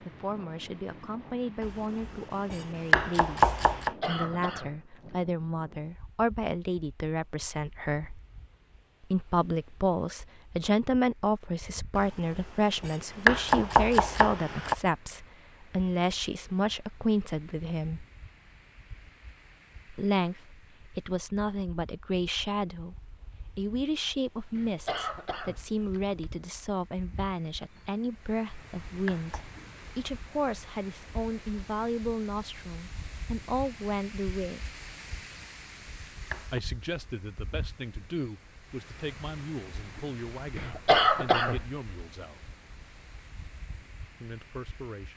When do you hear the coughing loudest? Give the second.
41 s.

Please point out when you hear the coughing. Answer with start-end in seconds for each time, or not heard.
3.8-5.0, 24.6-26.4, 40.5-41.6.